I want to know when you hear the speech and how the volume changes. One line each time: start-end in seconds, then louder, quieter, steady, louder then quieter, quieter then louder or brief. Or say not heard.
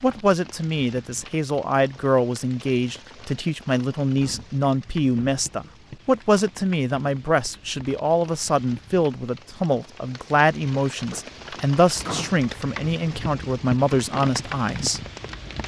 0.0-15.0 steady.